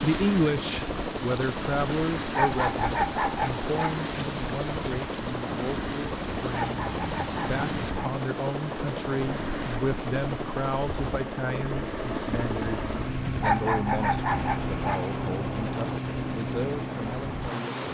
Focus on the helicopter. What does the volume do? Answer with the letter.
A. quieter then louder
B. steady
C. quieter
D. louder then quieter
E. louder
B.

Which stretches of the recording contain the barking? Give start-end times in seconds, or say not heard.
2.4-4.0, 6.5-8.2, 13.4-15.1.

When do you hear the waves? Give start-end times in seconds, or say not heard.
0.0-17.9.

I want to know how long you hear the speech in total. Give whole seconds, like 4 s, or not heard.
18 s.